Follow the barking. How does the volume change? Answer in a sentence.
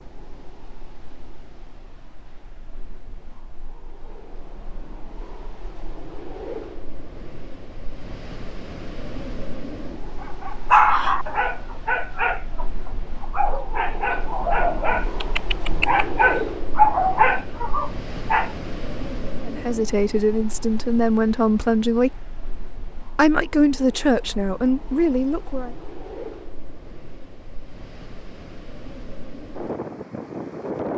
The volume of the barking goes down, then up.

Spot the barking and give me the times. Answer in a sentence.
The barking can be heard from 10.2 to 18.5 s.